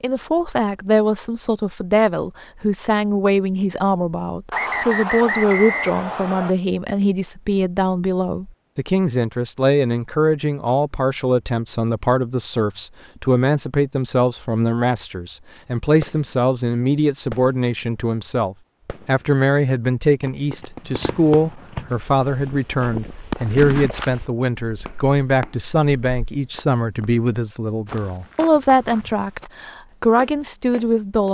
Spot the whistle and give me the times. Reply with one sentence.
You can hear the whistle from 4.5 to 6.5 s.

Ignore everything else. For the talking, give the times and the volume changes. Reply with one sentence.
The talking can be heard from 0.0 to 31.2 s, at a steady volume.